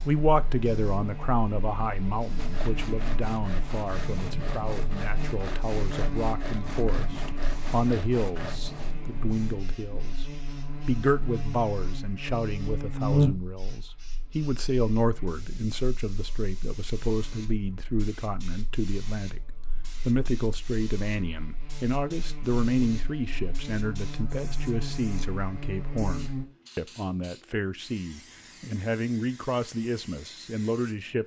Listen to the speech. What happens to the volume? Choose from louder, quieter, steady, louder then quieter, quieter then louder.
steady.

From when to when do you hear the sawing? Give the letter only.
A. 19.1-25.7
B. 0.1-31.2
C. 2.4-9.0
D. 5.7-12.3
C.